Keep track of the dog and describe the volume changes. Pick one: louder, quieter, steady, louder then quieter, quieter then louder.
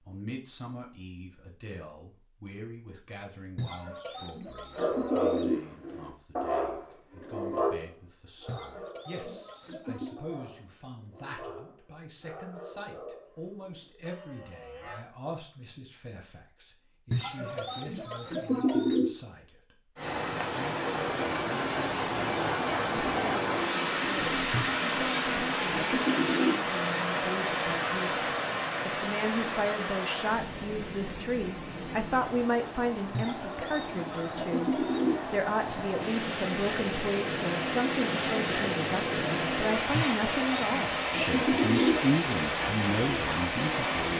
quieter.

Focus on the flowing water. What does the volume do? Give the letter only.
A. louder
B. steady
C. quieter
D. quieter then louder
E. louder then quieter
D.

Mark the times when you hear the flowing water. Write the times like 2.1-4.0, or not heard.
19.9-44.1.